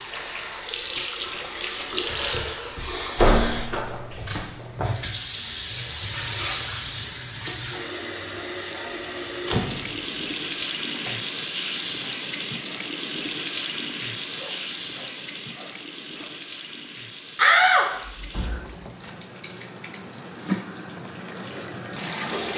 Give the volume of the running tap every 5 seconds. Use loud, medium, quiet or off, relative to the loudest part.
loud, loud, loud, medium, loud.